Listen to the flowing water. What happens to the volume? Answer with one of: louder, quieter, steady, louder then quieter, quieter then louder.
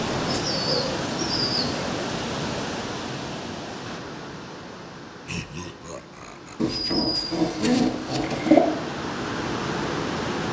quieter then louder.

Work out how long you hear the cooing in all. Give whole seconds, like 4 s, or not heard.
4 s.